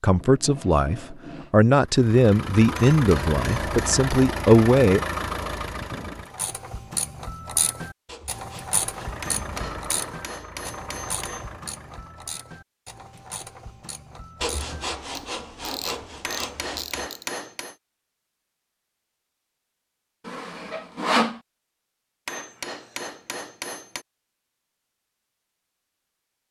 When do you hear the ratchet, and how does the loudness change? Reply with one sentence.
You can hear the ratchet from 6.3 to 17.3 s, getting quieter then louder.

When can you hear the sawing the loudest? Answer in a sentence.
The loudest moment of the sawing is at 21 seconds.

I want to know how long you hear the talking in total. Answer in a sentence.
You can hear the talking for 5 seconds altogether.